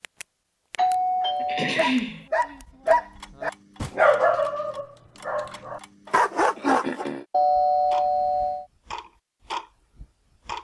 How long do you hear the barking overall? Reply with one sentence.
The barking can be heard for 5 seconds in total.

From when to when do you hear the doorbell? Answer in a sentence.
The doorbell can be heard from 0.8 to 1.8 s and from 7.3 to 8.7 s.